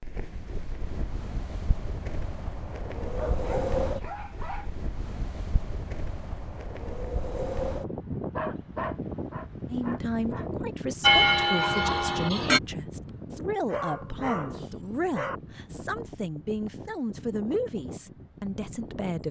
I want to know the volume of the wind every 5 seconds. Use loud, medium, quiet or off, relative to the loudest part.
loud, loud, loud, medium.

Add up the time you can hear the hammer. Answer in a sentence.
You can't hear the hammer here.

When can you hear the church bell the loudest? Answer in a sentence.
The volume of the church bell peaks at 11 seconds.